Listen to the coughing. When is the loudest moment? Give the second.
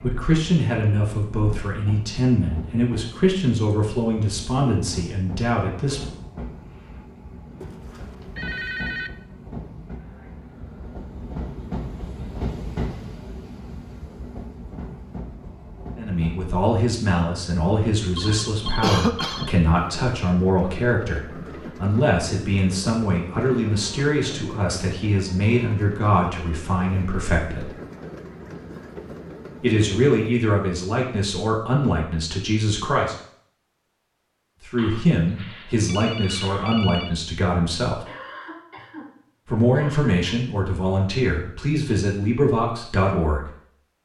19 s.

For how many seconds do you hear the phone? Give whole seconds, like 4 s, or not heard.
5 s.